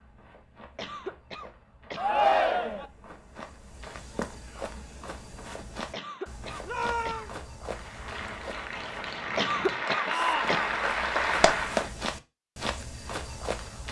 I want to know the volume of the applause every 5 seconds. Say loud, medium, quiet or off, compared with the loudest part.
off, medium, loud.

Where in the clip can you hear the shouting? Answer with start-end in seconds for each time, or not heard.
1.9-2.9, 6.7-7.3, 10.1-10.7.